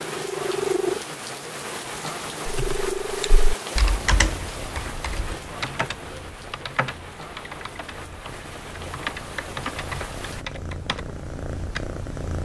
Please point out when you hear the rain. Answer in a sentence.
You can hear the rain from 0.0 to 10.4 s.